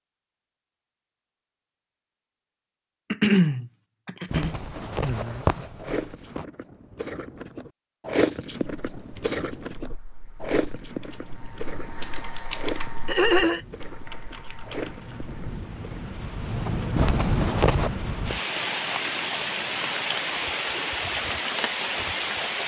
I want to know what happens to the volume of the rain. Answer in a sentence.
The loudness of the rain goes up.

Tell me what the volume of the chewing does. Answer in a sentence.
The volume of the chewing goes up, then down.